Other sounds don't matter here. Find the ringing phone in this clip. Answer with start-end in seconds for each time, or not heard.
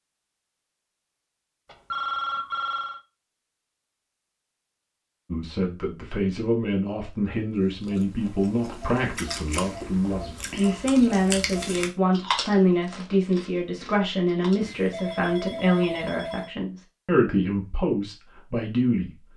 1.6-3.0, 14.6-16.5.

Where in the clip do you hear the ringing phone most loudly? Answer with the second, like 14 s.
2 s.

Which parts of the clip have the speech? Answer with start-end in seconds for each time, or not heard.
5.3-19.1.